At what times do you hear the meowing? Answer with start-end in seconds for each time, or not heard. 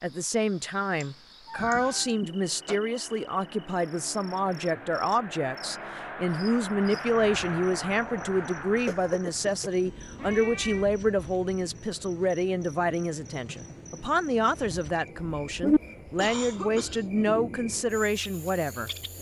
1.0-2.1, 10.2-10.9, 15.4-15.8.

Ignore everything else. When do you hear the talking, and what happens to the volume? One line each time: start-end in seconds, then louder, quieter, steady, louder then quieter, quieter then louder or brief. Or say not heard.
0.0-18.9 steady.